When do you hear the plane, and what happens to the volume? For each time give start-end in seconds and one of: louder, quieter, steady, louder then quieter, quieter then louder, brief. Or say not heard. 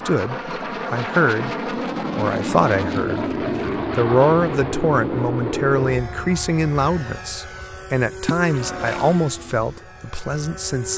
0.0-10.9 quieter.